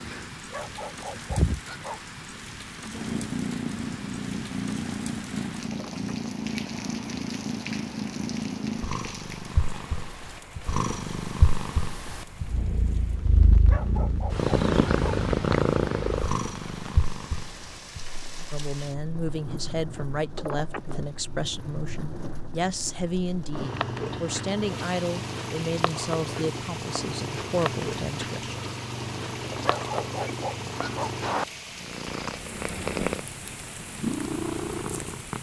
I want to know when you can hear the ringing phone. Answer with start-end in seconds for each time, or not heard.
5.7-6.8, 20.4-20.9, 29.4-30.3.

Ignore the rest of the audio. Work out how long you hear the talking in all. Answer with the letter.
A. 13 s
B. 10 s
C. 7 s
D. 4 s
B.